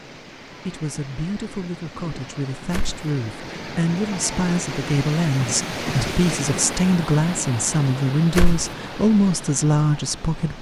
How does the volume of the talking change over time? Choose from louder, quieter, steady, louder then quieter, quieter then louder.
louder.